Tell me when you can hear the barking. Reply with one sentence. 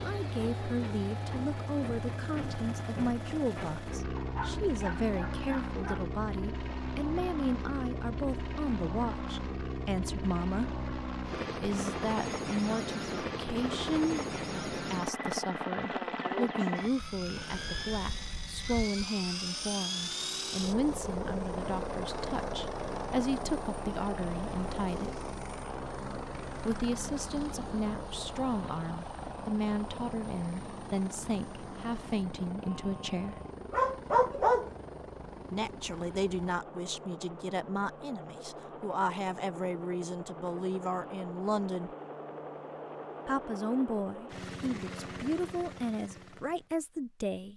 You can hear the barking from 4.2 to 6.1 s and from 33.7 to 34.7 s.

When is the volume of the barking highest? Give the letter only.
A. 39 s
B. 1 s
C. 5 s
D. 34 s
D.